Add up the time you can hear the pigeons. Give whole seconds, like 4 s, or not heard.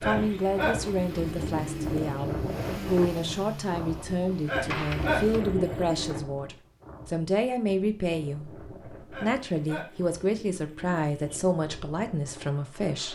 6 s.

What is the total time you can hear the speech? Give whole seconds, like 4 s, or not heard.
13 s.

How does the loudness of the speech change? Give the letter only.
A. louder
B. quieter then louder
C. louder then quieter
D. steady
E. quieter
D.